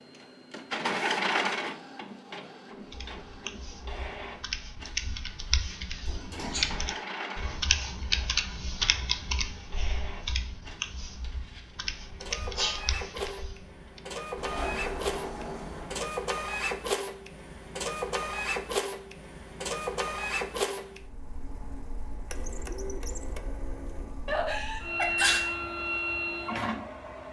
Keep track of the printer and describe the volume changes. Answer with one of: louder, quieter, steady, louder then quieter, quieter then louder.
quieter then louder.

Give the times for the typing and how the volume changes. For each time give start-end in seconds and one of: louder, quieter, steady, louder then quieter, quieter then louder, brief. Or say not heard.
2.9-14.0 louder then quieter.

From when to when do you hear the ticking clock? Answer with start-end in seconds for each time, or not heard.
not heard.